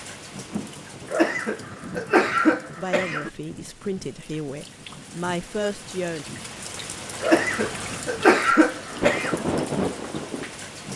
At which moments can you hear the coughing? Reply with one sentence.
The coughing can be heard from 1.1 to 3.3 s and from 7.2 to 9.4 s.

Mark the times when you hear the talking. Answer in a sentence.
The talking can be heard from 2.8 to 6.2 s.